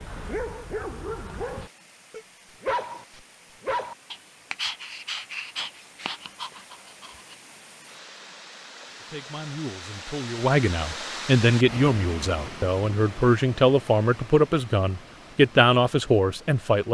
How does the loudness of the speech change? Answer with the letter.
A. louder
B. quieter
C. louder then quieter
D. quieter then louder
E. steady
A.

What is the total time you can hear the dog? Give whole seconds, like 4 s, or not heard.
7 s.